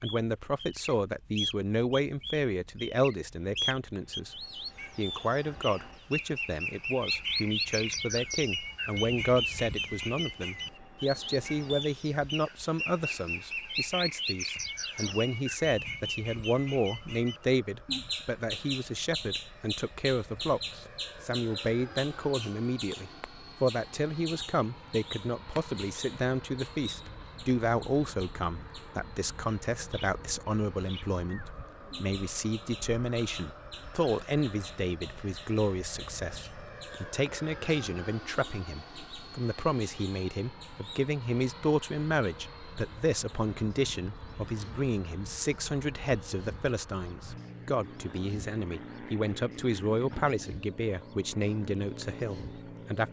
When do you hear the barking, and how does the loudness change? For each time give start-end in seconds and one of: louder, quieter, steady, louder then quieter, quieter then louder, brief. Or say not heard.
not heard.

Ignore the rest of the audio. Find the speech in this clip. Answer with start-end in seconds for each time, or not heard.
0.0-4.3, 5.0-53.0.